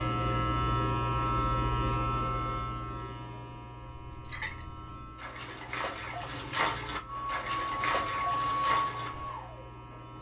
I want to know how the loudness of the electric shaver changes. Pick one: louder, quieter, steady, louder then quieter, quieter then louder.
quieter.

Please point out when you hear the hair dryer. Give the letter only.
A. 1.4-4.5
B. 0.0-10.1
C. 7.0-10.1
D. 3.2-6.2
C.